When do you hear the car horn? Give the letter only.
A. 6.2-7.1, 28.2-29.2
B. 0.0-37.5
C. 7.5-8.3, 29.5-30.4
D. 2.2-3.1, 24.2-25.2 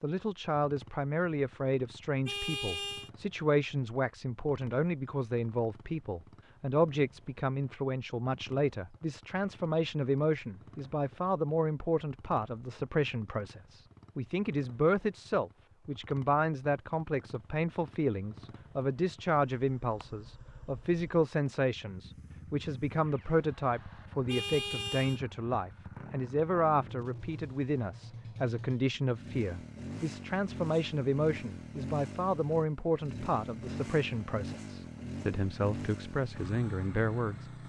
D.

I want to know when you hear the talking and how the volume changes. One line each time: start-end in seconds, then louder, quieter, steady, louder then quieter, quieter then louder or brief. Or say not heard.
0.0-37.5 steady.